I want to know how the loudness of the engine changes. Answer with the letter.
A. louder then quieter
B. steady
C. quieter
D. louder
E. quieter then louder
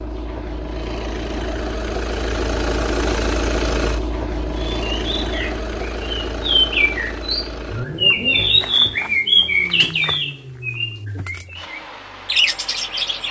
C.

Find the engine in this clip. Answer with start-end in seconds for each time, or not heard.
0.0-13.2.